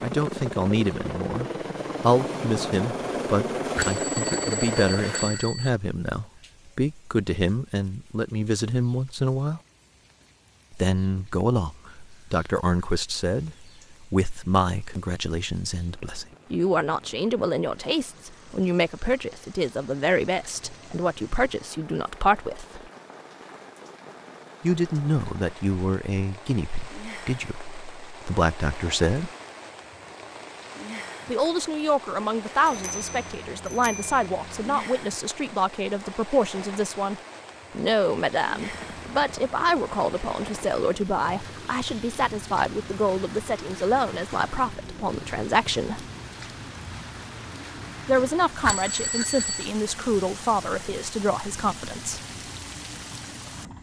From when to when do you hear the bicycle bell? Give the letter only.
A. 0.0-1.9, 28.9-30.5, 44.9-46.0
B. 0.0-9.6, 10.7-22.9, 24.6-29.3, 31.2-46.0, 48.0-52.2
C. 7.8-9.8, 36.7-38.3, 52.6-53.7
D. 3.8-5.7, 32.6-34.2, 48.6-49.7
D.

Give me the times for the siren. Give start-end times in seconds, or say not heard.
not heard.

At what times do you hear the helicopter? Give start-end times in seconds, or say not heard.
0.0-5.4, 32.8-34.8, 38.6-53.7.